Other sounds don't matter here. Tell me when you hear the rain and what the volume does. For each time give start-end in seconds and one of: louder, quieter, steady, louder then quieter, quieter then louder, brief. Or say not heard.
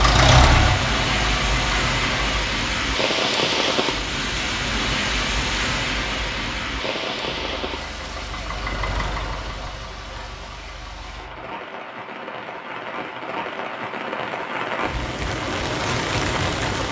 0.0-16.8 quieter then louder.